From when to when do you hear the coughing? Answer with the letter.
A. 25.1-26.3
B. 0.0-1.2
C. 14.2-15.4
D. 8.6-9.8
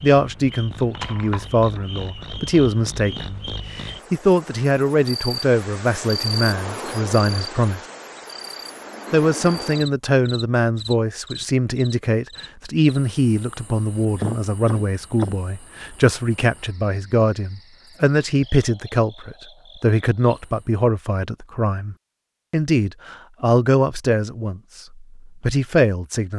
C.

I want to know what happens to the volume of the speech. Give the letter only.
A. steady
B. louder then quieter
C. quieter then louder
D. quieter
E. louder
A.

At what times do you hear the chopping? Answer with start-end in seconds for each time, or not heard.
not heard.